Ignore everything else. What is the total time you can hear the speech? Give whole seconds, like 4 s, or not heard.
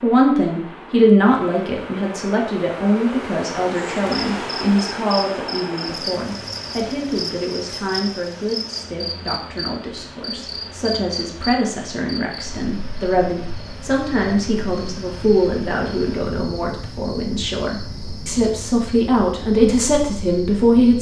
21 s.